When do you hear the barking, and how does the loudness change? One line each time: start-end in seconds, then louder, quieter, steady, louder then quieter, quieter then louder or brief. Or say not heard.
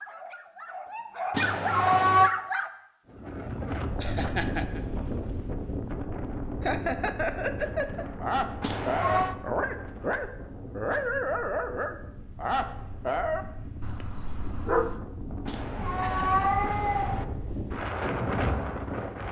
0.0-2.7 brief
8.2-15.0 quieter.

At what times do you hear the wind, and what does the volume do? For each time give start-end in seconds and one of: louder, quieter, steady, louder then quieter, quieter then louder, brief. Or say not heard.
3.0-19.2 quieter then louder.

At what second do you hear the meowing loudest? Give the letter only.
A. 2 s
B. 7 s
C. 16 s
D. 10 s
A.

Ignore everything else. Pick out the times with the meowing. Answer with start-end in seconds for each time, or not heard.
1.3-2.3, 8.6-9.3, 15.4-17.2.